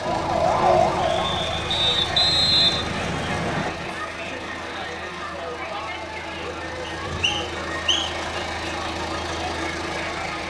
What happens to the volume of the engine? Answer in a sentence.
The loudness of the engine goes down, then up.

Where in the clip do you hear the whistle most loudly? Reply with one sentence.
The volume of the whistle peaks at 3 seconds.